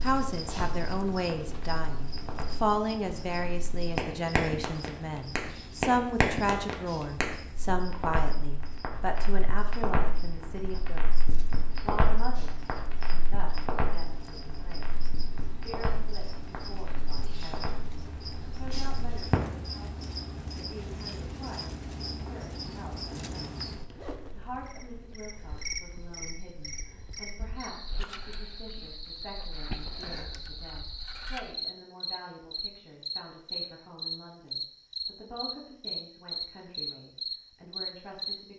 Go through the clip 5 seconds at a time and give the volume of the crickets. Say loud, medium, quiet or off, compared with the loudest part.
medium, quiet, quiet, medium, medium, medium, loud, loud.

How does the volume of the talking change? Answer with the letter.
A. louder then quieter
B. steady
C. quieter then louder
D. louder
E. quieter
E.